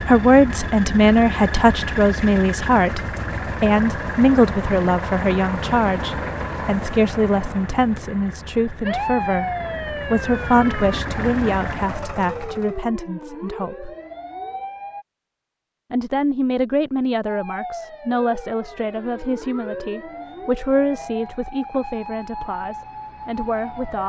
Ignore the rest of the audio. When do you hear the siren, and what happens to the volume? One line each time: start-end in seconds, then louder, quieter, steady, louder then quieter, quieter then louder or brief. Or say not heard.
8.8-15.1 quieter
17.2-24.0 steady.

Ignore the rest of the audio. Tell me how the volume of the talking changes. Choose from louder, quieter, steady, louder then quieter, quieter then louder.
quieter.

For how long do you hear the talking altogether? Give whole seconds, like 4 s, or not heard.
22 s.